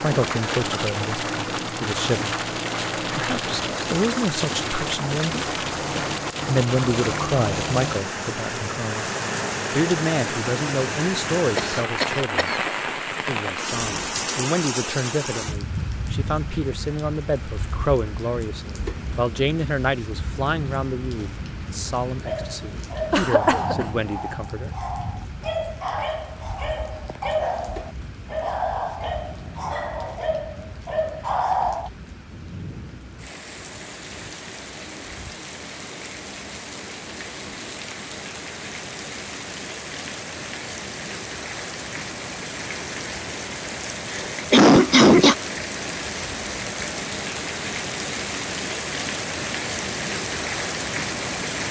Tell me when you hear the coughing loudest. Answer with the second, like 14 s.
45 s.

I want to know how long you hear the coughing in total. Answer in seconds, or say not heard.
3 s.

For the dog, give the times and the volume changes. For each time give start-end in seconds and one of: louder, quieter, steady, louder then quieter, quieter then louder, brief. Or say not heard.
22.2-31.9 steady.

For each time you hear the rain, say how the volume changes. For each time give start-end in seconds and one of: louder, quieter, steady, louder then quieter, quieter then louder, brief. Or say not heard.
0.0-51.6 quieter then louder.